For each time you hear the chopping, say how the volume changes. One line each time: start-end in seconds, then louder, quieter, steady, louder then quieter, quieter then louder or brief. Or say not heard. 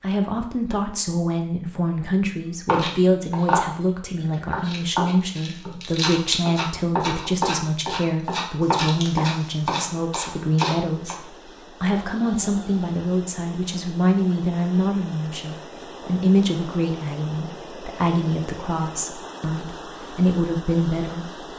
2.6-11.2 steady.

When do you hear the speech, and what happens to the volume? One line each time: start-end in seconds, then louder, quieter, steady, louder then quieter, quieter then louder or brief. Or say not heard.
0.0-21.4 steady.